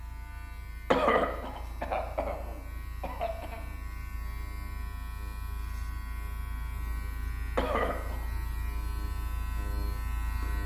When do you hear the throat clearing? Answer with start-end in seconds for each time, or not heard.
0.9-3.5, 7.5-8.2.